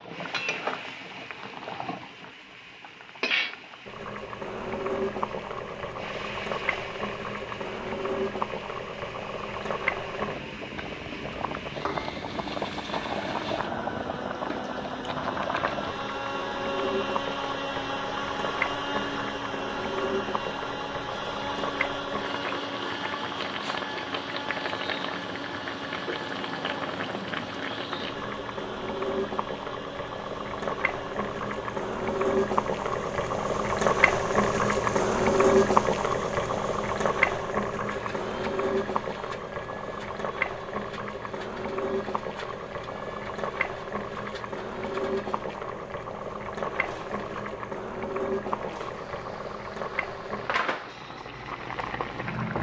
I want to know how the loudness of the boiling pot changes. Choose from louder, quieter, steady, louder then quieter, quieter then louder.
louder then quieter.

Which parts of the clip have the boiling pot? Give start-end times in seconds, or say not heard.
0.0-52.5.